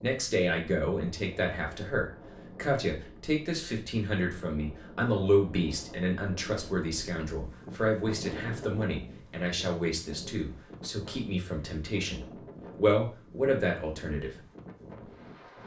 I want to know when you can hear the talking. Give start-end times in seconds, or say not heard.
0.0-14.4.